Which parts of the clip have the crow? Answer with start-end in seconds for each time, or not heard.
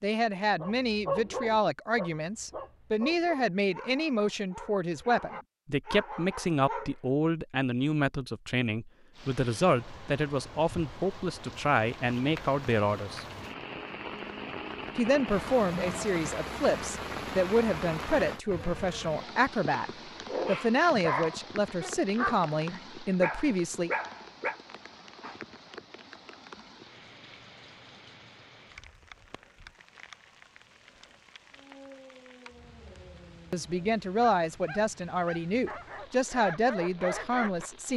not heard.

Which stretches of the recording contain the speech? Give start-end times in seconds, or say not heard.
0.0-13.2, 14.9-23.9, 33.5-37.9.